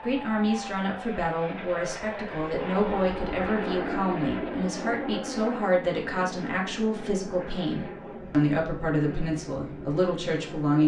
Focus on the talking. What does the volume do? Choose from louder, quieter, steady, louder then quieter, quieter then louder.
steady.